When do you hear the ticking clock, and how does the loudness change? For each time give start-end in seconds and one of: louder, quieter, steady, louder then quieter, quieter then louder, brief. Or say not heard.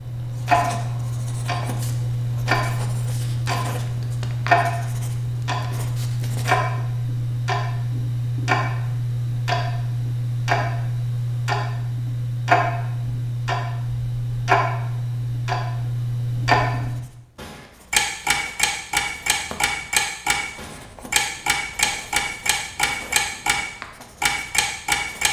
0.0-23.6 steady
24.2-25.2 brief.